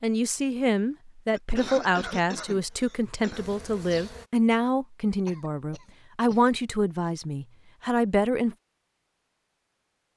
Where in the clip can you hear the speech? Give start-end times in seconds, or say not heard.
0.0-8.6.